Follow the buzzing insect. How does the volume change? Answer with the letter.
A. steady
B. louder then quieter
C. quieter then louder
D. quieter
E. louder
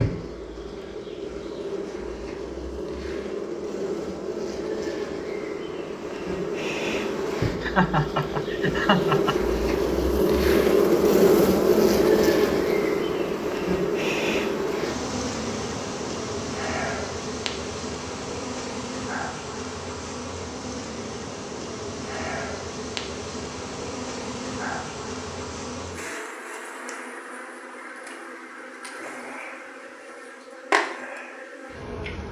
B.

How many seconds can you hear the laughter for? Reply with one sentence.
The laughter can be heard for 2 seconds in total.